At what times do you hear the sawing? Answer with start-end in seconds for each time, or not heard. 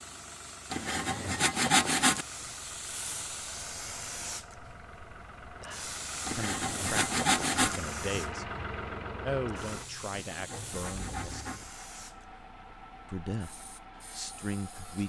0.7-2.2, 6.2-7.8, 10.2-11.7.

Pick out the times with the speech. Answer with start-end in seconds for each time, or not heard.
6.3-8.4, 9.2-11.5, 13.1-15.0.